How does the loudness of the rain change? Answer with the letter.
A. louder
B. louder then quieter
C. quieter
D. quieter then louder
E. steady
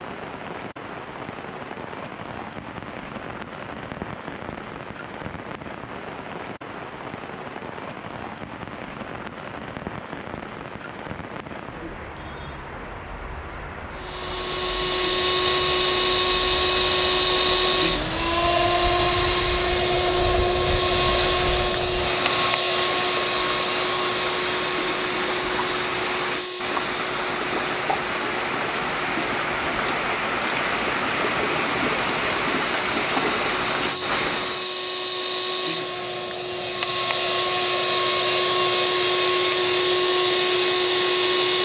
A.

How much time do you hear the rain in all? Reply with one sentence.
The rain can be heard for 35 seconds in total.